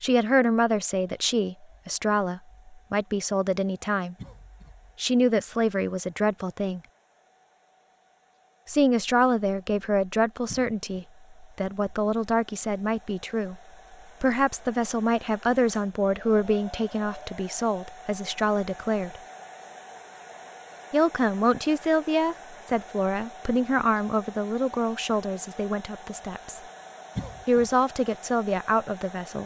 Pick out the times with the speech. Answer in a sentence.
The speech can be heard from 0.0 to 4.2 s, from 5.0 to 6.8 s, from 8.7 to 13.6 s, from 14.2 to 19.2 s, from 20.9 to 26.6 s and from 27.4 to 29.4 s.